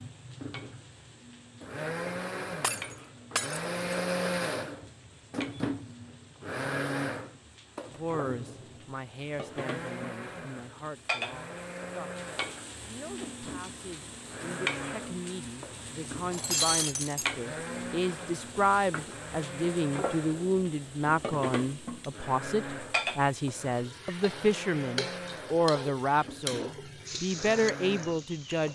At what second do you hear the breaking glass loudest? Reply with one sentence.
The volume of the breaking glass peaks at 17 seconds.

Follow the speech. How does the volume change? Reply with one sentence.
The loudness of the speech goes up.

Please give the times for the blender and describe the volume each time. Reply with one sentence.
You can hear the blender from 0.0 to 28.6 s, getting quieter.